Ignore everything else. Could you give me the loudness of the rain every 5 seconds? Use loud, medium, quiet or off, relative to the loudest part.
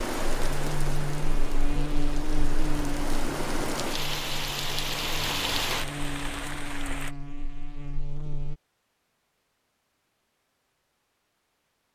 loud, loud, off.